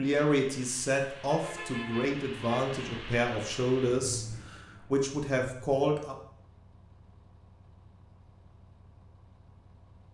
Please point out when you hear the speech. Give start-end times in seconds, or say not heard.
0.0-6.2.